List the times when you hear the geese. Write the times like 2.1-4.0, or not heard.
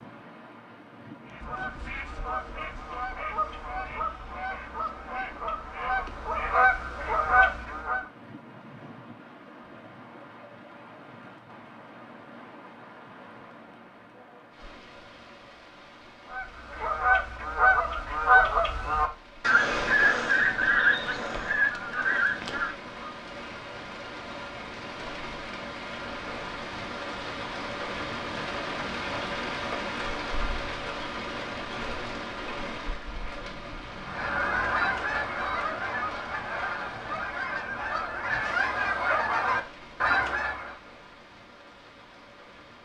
1.2-8.1, 16.3-23.1, 34.0-40.8.